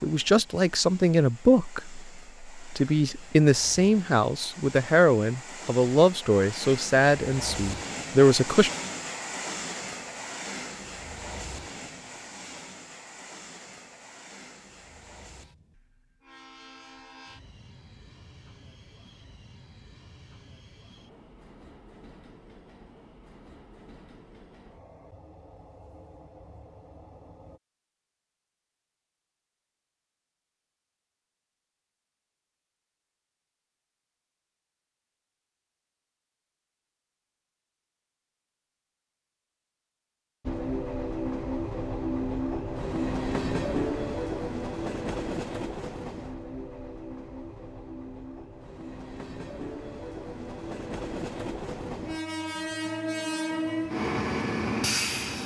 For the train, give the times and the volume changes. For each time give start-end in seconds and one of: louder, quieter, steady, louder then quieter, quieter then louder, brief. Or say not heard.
0.0-27.6 louder then quieter
40.5-55.4 quieter then louder.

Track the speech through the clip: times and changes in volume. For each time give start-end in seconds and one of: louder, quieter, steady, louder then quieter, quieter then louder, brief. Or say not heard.
0.0-8.7 steady.